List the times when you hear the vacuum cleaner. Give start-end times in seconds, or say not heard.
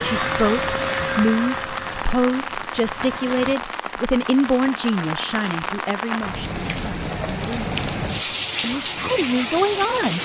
0.0-3.5.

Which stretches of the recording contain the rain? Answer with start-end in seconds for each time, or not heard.
0.1-10.2.